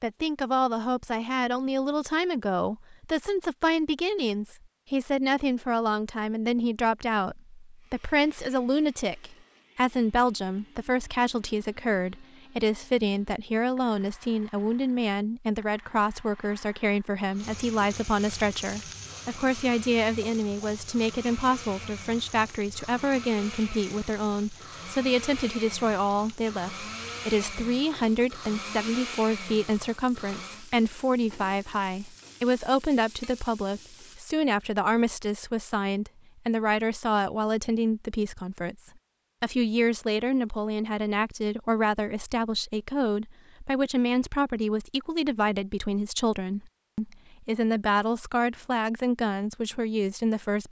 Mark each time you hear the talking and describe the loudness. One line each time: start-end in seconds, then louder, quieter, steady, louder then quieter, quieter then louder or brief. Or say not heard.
0.0-50.6 steady.